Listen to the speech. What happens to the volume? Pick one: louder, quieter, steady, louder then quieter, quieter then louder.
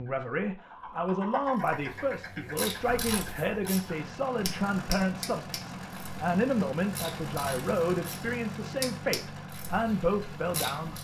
steady.